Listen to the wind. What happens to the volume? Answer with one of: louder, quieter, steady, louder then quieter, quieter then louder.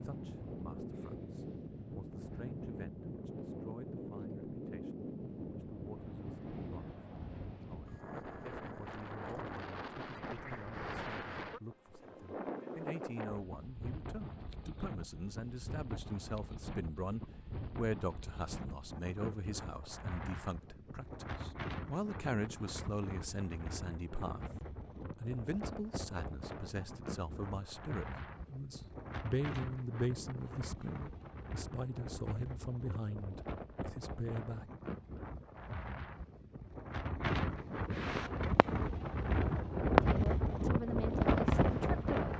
louder.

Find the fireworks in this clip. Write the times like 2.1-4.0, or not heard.
38.0-38.6, 41.2-42.2.